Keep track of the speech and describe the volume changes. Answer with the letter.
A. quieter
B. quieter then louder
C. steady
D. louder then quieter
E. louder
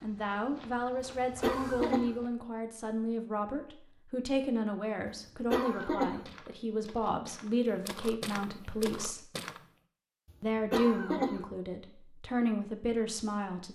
C.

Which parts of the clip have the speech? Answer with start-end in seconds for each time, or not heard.
0.0-9.2, 10.4-13.7.